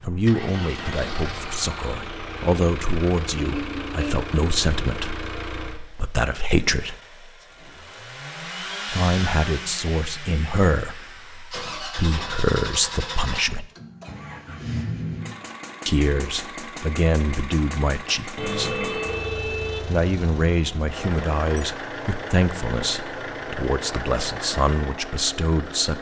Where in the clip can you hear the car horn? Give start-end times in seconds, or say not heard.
3.4-4.2, 18.4-19.9.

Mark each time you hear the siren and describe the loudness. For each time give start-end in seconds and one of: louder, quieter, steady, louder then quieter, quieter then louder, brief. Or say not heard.
not heard.